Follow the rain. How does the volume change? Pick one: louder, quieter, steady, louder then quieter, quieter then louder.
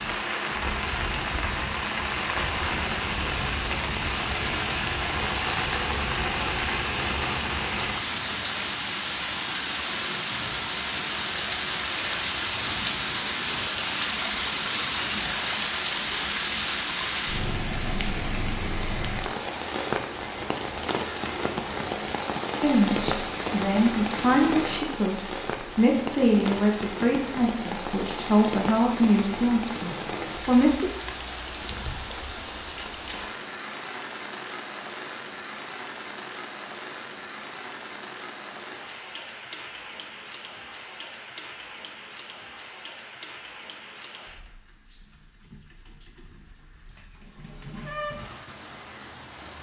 quieter.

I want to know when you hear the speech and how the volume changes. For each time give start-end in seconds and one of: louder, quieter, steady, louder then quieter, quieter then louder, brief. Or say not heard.
22.6-30.9 steady.